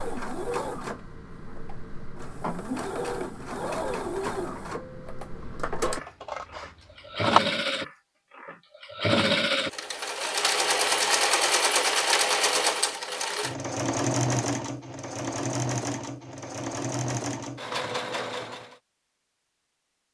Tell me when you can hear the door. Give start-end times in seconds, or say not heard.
not heard.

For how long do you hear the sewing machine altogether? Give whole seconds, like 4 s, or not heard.
19 s.